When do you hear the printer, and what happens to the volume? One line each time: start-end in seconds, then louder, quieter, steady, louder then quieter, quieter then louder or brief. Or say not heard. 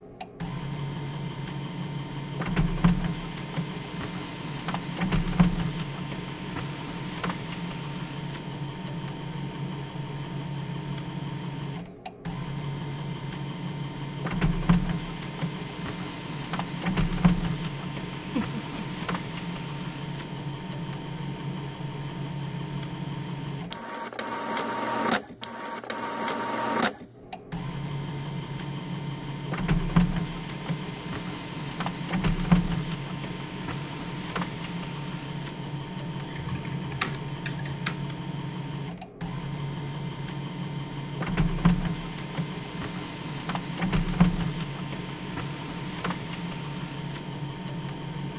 0.0-48.3 steady.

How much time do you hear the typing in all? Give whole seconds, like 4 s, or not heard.
2 s.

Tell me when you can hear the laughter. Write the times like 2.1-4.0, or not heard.
18.1-19.1.